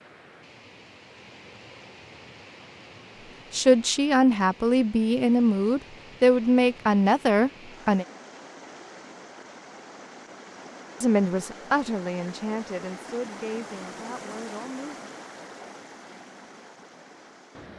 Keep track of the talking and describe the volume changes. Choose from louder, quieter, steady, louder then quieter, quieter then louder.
quieter.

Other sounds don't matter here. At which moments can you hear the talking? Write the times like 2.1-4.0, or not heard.
3.5-8.1, 11.0-15.0.